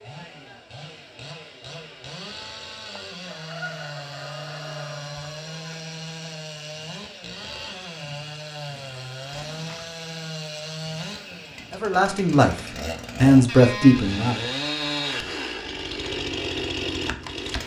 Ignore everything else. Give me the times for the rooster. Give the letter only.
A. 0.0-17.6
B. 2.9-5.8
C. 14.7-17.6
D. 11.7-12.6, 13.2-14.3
B.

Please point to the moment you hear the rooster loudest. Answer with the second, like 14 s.
4 s.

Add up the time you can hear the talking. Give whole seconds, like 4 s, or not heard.
2 s.